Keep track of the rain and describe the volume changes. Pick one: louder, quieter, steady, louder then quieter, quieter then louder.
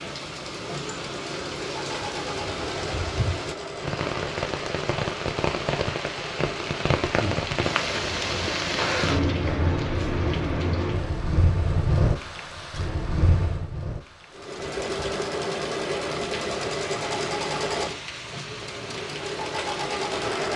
louder then quieter.